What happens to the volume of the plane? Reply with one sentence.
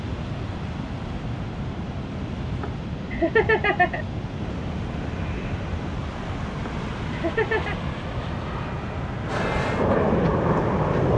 The volume of the plane goes up.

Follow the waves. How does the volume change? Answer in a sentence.
The volume of the waves stays about the same.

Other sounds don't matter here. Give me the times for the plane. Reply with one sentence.
The plane can be heard from 4.3 to 11.1 s.